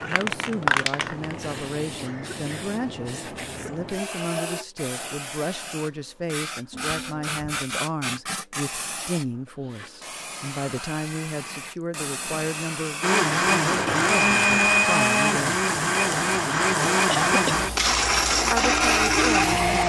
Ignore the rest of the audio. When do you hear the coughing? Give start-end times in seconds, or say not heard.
1.9-3.9, 6.7-7.7, 17.1-17.7.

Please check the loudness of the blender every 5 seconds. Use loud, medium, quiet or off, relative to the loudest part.
off, off, loud, loud.